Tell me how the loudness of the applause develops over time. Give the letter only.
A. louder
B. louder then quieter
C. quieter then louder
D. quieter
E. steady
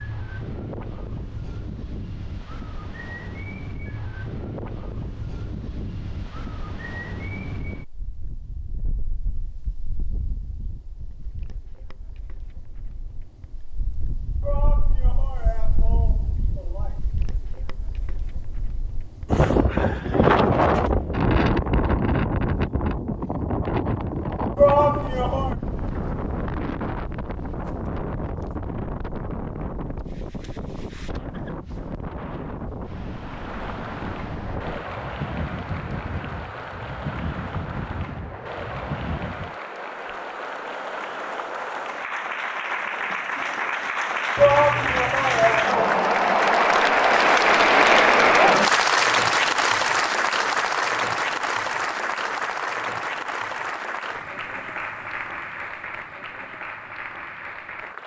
B.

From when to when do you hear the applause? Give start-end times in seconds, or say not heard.
33.1-58.0.